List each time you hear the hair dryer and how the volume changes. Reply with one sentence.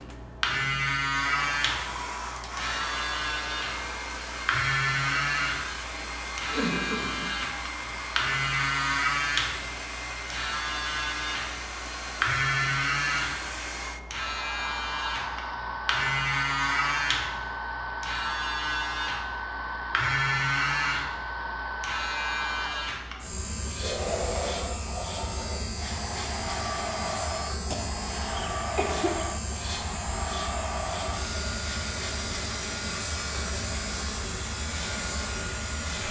You can hear the hair dryer from 0.0 to 36.0 s, at a steady volume.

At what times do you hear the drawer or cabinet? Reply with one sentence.
The drawer or cabinet can't be heard in this clip.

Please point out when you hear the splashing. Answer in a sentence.
The splashing can't be heard in this clip.